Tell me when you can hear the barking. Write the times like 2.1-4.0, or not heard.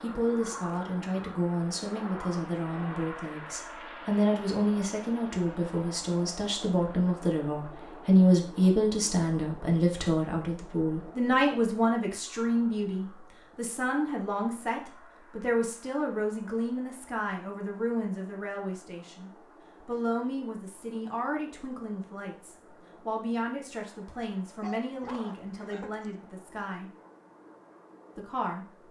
24.6-26.1.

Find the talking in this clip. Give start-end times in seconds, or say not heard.
0.0-26.9, 28.1-28.6.